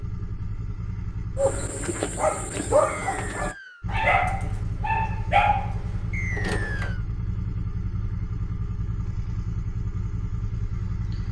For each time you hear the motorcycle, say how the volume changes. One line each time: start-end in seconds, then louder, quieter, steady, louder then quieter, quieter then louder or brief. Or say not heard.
0.0-1.7 brief
3.8-11.2 steady.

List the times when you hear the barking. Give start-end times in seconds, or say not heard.
1.4-6.9.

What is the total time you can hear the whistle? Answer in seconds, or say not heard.
2 s.